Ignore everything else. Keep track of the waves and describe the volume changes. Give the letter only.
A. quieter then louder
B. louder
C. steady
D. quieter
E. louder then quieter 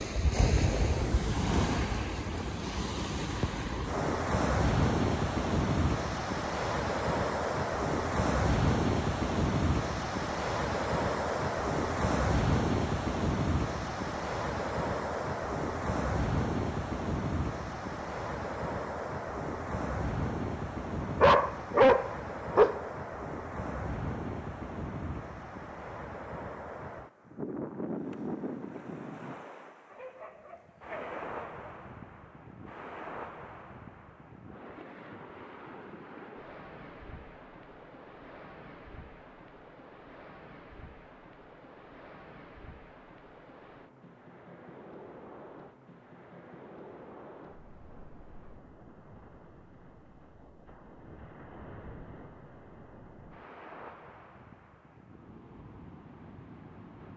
D.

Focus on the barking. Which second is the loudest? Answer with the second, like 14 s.
22 s.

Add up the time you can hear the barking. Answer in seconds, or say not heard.
3 s.